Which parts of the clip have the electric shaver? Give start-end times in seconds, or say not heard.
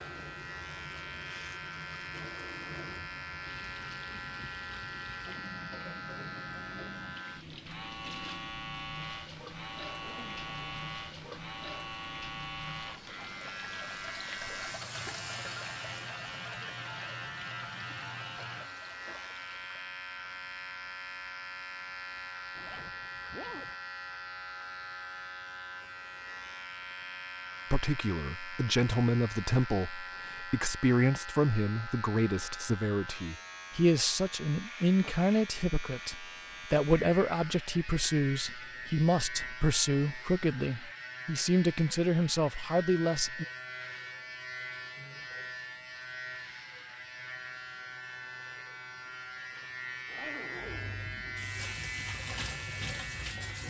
0.0-53.6.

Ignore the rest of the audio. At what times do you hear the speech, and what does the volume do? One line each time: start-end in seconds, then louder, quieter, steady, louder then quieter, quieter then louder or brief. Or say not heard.
27.7-43.5 steady.